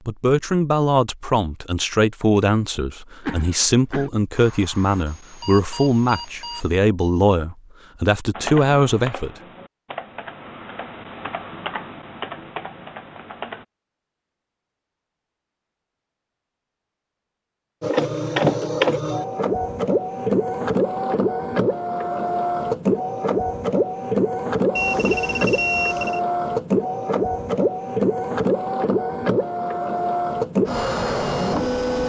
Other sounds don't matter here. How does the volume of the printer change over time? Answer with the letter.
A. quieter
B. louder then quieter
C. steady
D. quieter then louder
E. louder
C.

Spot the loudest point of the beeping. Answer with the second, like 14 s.
26 s.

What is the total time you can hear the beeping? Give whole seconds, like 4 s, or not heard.
4 s.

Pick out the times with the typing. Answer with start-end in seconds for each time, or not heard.
8.3-13.7.